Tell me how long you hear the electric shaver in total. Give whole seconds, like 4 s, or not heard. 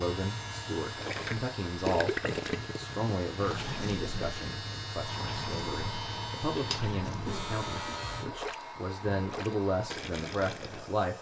8 s.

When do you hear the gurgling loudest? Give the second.
2 s.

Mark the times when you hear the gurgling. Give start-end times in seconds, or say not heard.
0.9-10.9.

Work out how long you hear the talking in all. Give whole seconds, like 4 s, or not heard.
11 s.